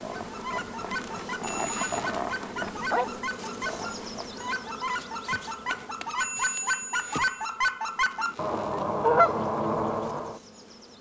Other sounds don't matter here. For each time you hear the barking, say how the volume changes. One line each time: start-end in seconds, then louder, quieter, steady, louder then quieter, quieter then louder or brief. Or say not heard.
0.0-4.5 louder then quieter.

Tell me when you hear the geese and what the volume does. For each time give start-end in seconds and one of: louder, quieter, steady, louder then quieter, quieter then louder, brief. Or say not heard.
0.2-10.4 louder.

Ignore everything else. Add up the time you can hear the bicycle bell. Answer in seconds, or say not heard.
2 s.